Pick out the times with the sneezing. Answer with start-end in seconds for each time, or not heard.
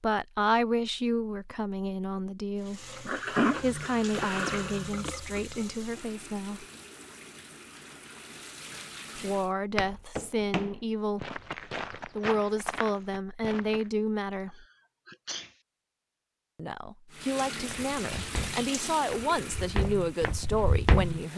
3.0-5.5, 14.3-15.6.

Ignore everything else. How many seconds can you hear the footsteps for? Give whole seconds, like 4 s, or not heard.
8 s.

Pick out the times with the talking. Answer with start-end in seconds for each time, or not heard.
0.0-6.7, 9.2-14.7, 16.6-21.3.